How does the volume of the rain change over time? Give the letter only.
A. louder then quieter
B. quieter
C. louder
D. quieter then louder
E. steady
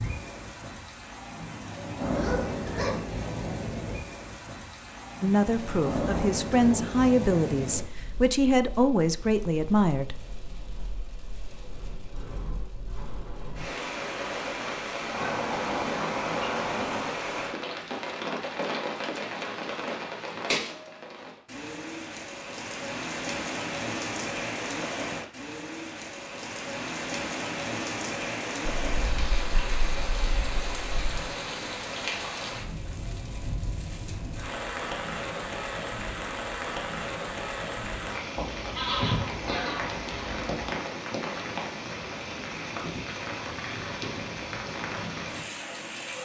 E.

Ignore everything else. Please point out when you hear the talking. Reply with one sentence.
You can hear the talking from 5.2 to 10.2 s.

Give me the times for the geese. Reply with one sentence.
You can hear the geese from 2.0 to 3.0 s, from 15.1 to 17.2 s, from 28.9 to 31.2 s and from 38.4 to 40.7 s.